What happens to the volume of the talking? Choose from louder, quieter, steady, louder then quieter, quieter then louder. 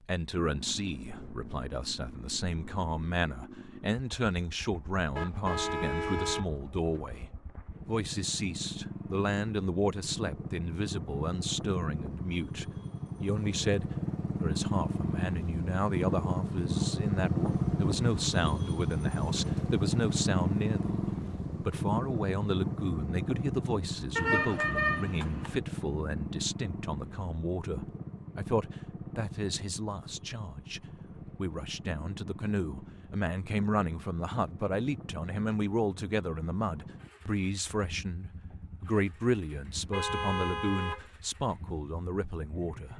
steady.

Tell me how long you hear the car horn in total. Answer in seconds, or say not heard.
4 s.